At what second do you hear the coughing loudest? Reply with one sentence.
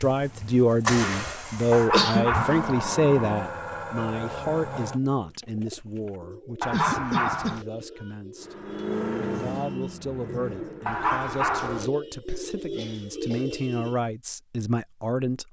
The loudest moment of the coughing is at 2 seconds.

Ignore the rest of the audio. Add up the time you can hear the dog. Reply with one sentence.
You can hear the dog for 3 seconds altogether.